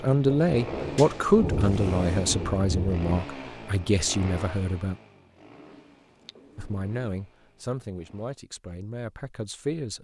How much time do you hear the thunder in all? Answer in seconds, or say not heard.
3 s.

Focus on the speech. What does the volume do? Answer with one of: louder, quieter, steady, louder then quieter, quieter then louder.
quieter.